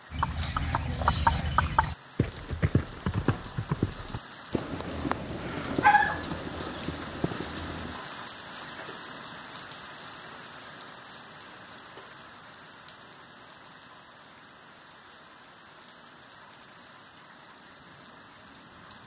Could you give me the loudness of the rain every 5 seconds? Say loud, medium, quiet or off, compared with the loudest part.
medium, loud, medium, medium.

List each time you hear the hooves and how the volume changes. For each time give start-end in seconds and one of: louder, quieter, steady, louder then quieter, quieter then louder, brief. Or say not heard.
0.1-8.0 quieter.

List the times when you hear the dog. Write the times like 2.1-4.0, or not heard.
5.8-6.7.